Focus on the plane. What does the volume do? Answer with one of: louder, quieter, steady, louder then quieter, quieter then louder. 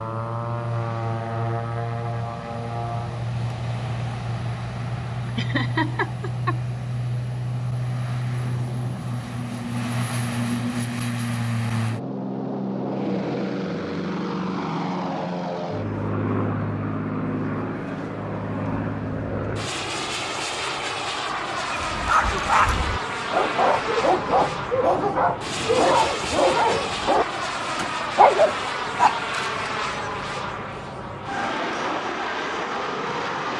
steady.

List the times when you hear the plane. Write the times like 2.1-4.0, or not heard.
0.0-33.5.